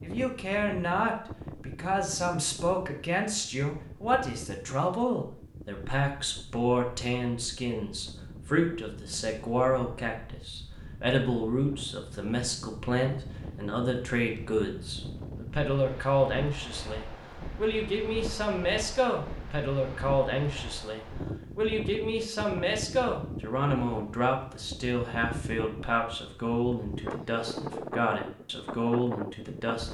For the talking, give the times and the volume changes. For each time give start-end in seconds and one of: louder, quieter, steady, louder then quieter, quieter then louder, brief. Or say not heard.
0.0-29.8 steady.